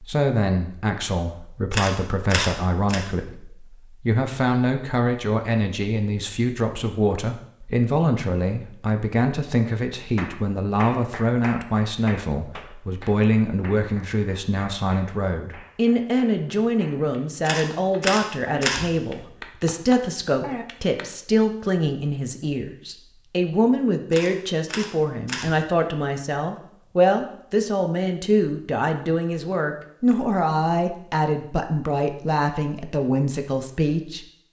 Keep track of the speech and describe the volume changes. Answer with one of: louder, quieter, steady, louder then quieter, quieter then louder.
steady.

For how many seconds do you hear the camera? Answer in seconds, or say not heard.
4 s.